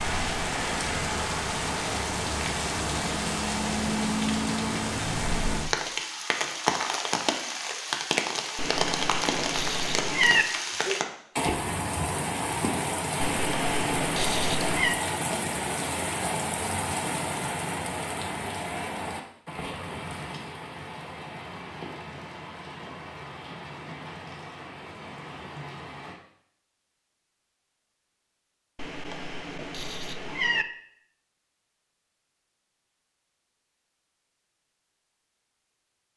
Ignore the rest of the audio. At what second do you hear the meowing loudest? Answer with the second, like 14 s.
10 s.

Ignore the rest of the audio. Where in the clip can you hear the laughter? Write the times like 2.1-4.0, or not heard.
not heard.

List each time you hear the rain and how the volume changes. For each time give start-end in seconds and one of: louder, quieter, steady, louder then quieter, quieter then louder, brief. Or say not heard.
0.0-26.2 quieter.